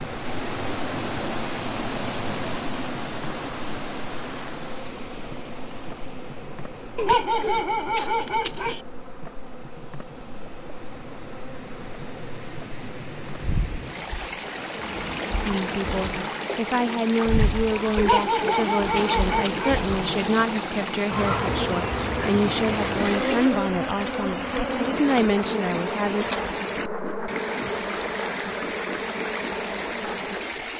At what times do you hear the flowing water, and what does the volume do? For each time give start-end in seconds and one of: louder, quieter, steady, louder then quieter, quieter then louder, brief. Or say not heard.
0.0-30.7 quieter then louder.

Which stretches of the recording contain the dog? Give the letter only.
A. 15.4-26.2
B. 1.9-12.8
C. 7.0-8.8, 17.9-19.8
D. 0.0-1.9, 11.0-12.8
C.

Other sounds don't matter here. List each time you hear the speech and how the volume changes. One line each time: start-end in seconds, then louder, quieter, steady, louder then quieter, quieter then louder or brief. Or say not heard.
15.4-26.2 steady.